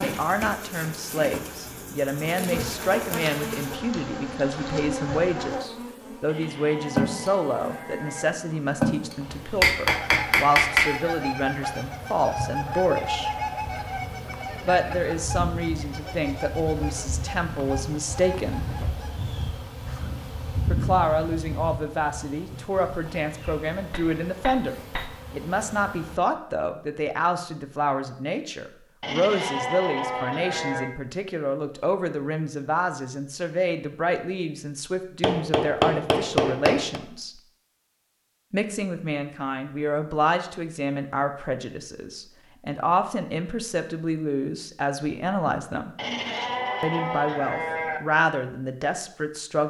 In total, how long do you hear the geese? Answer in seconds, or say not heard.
10 s.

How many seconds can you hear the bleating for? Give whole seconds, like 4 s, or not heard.
6 s.